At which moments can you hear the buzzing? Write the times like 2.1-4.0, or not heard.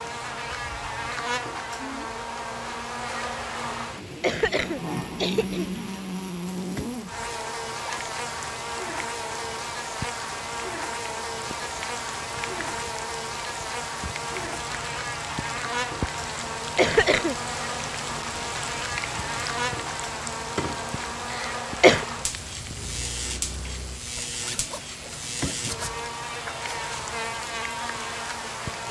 0.0-28.8.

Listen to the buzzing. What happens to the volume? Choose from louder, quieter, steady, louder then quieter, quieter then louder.
steady.